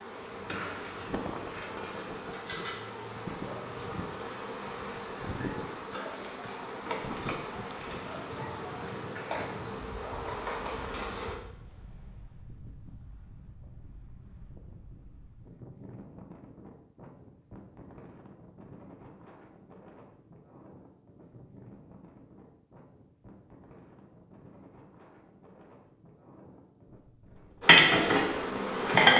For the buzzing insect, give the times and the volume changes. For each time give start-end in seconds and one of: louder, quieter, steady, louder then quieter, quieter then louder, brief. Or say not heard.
0.0-11.3 steady
27.6-29.1 brief.